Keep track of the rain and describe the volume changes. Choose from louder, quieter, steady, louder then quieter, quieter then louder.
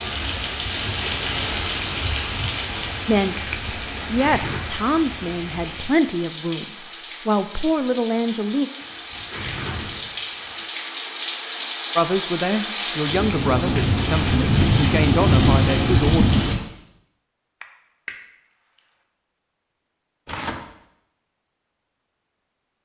quieter then louder.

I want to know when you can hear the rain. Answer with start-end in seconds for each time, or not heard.
0.0-16.6.